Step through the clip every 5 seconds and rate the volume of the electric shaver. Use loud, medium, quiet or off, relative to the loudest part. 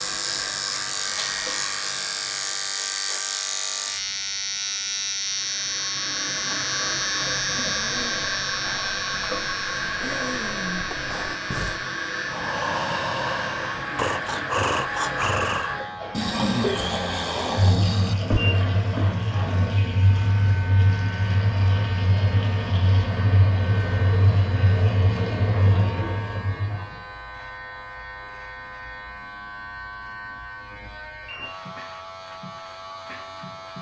loud, loud, medium, medium, medium, medium, medium.